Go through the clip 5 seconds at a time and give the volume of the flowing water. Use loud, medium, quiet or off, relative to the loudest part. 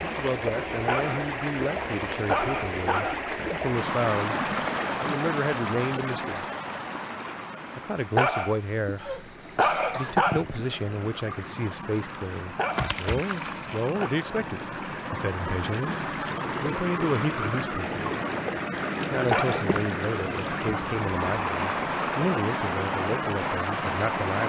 loud, medium, medium, loud, loud.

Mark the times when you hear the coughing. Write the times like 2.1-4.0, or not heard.
9.1-10.2.